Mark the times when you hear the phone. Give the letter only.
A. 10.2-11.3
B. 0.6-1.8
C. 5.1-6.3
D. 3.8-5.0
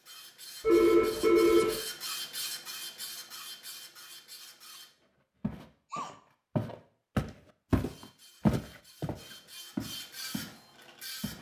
B.